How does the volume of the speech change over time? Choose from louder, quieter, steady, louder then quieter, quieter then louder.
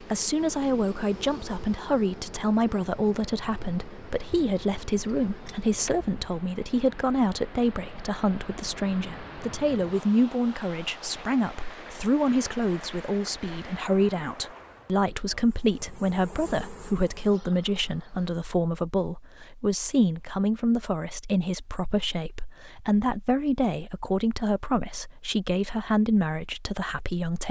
steady.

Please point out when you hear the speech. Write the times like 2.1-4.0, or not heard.
0.0-27.4.